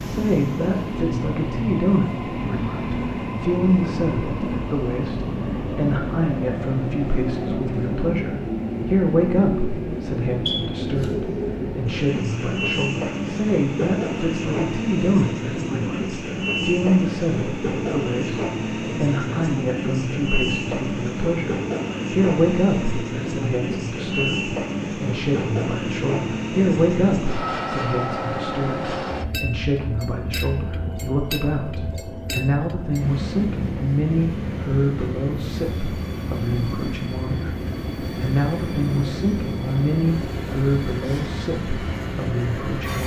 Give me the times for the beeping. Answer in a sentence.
The beeping can be heard from 10.4 to 11.1 s.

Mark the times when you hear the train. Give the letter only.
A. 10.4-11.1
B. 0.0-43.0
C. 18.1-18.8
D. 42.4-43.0
B.